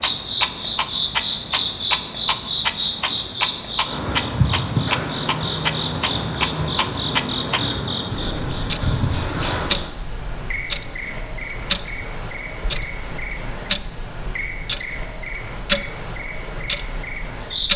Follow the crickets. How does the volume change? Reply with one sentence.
The volume of the crickets stays about the same.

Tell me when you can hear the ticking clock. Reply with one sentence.
The ticking clock can be heard from 0.0 to 17.7 s.